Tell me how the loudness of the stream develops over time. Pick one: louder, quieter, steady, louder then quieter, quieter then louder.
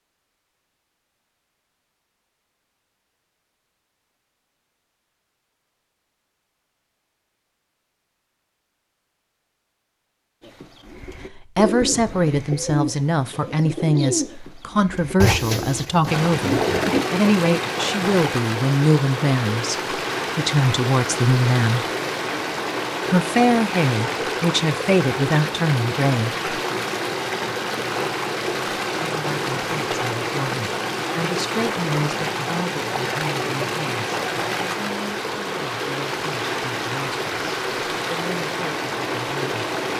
steady.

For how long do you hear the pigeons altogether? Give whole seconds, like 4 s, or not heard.
7 s.